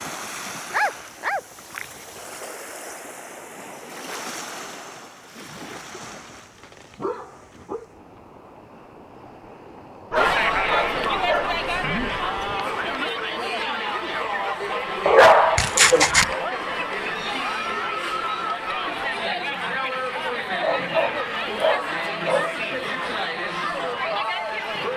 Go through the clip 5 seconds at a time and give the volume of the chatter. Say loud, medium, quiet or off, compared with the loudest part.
off, off, loud, loud, loud.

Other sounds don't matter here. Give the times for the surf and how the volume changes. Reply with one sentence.
The surf can be heard from 0.0 to 13.0 s, getting quieter then louder.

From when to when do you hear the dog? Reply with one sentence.
You can hear the dog from 0.7 to 1.4 s, from 6.2 to 7.8 s, from 10.1 to 12.2 s, from 15.1 to 16.4 s and from 20.1 to 22.6 s.